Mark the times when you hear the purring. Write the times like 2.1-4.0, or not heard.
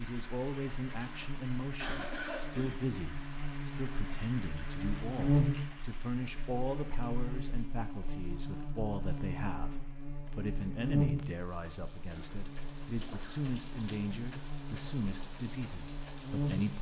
not heard.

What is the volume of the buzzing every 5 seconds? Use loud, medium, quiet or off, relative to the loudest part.
medium, loud, loud, loud.